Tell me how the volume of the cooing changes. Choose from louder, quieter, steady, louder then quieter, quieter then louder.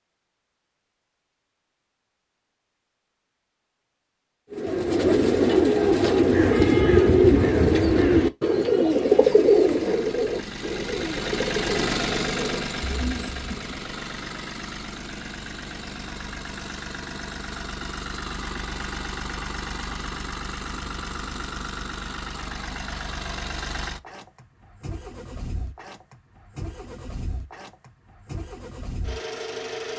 quieter.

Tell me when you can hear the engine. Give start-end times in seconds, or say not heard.
9.0-29.9.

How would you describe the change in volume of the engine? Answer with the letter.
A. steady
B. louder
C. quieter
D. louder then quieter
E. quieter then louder
C.